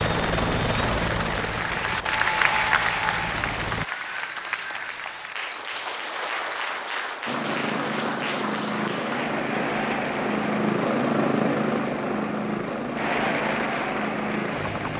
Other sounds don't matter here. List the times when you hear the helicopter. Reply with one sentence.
You can hear the helicopter from 0.0 to 3.9 s and from 7.2 to 14.9 s.